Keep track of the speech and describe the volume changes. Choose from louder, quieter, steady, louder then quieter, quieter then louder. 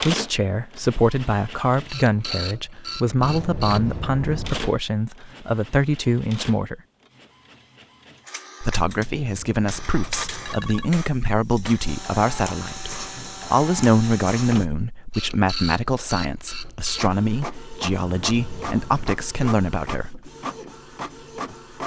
steady.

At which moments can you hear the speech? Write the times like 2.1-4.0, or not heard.
0.0-6.8, 8.6-20.3.